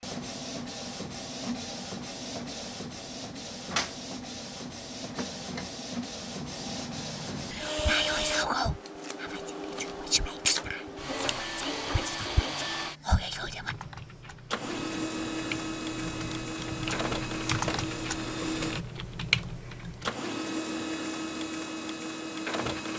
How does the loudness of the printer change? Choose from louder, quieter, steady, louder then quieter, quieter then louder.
steady.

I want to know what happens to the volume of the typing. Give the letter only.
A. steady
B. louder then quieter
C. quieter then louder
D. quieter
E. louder
E.